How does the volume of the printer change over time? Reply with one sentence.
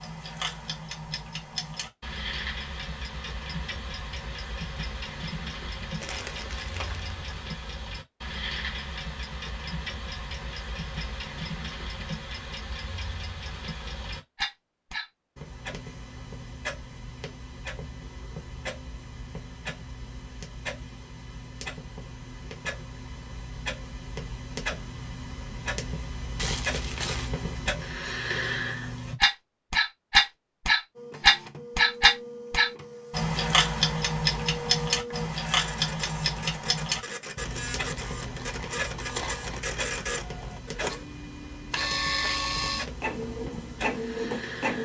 The volume of the printer goes up.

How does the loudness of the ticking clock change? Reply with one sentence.
The volume of the ticking clock goes up, then down.